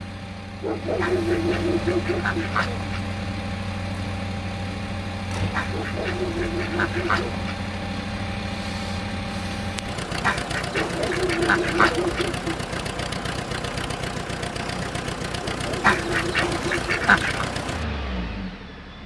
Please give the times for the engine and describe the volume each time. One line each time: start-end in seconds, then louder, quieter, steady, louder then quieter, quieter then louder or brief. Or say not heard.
0.0-19.0 steady.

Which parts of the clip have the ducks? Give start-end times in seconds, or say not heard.
1.0-3.0, 5.5-7.5, 10.2-12.2, 15.8-17.4.